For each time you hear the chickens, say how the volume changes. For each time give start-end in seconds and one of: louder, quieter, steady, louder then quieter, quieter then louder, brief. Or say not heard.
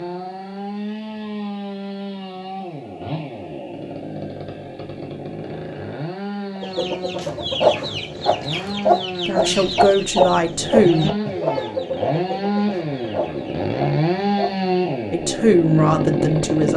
6.5-15.1 quieter.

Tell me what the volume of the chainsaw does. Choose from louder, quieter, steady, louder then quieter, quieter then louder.
louder.